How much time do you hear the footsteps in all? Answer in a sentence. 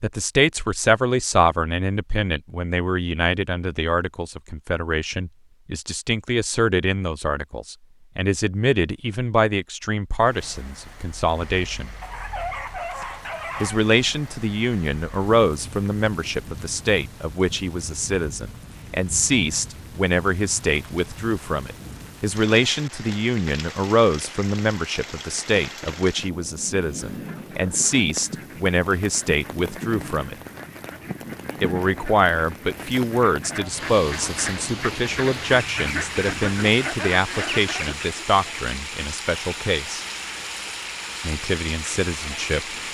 The footsteps can't be heard in this clip.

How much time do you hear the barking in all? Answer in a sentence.
You can hear the barking for 2 seconds altogether.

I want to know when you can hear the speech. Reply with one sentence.
The speech can be heard from 0.0 to 11.9 s, from 13.6 to 30.4 s, from 31.6 to 40.0 s and from 41.2 to 42.9 s.